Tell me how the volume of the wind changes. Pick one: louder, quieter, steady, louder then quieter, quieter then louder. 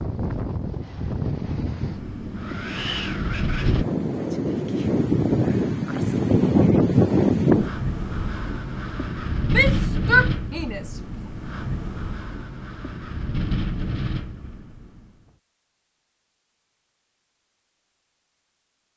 louder then quieter.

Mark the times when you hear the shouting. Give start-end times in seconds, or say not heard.
9.5-10.9.